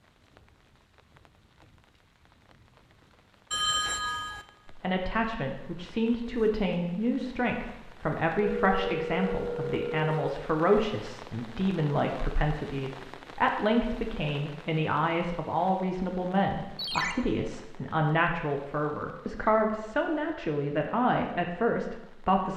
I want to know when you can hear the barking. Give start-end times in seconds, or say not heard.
not heard.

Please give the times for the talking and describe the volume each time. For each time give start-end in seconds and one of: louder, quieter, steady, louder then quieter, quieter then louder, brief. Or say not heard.
4.7-22.5 steady.